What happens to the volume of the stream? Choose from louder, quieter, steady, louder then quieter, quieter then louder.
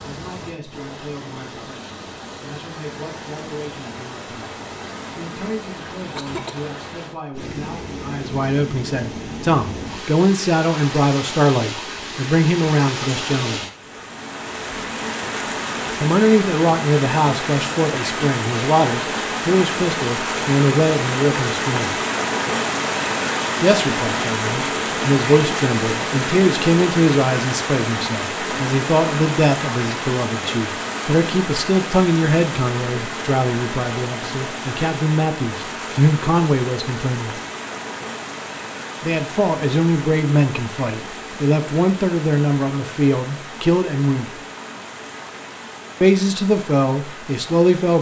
louder then quieter.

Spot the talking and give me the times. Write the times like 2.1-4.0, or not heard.
0.0-13.7, 16.0-21.9, 23.6-37.4, 39.0-44.4, 46.0-47.9.